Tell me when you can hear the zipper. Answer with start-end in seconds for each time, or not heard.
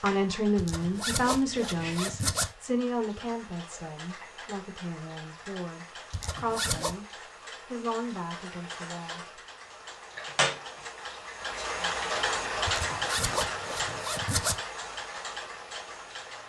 0.6-2.5, 6.1-7.0, 12.7-14.6.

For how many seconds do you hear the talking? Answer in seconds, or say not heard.
9 s.